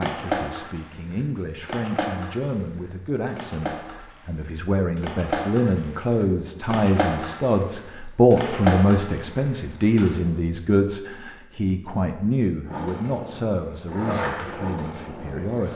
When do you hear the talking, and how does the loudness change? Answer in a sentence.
The talking can be heard from 0.0 to 15.7 s, getting louder then quieter.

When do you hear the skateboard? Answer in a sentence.
You can hear the skateboard from 0.0 to 10.3 s and from 12.7 to 15.7 s.